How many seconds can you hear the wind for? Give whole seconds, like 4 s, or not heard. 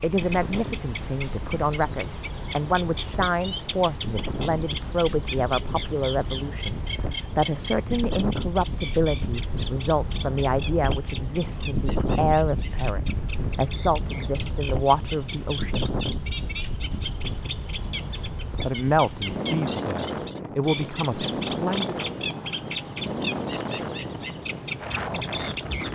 26 s.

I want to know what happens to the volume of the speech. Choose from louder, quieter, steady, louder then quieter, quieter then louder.
steady.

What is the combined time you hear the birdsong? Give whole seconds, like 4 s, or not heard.
26 s.